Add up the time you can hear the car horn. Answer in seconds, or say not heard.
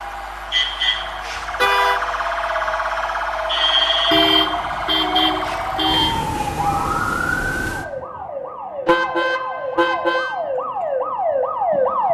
4 s.